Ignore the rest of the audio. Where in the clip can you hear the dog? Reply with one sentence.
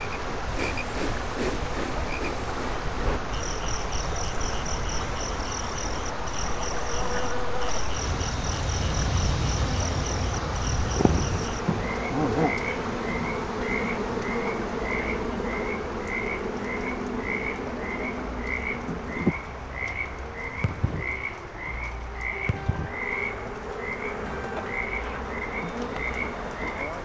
The dog can't be heard in this clip.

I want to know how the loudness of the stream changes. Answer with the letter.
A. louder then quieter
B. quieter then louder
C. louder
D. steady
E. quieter
E.